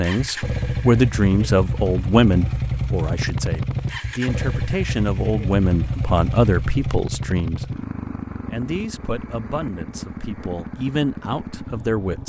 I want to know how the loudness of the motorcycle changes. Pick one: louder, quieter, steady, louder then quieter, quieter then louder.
quieter.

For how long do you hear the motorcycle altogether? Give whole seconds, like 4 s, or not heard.
12 s.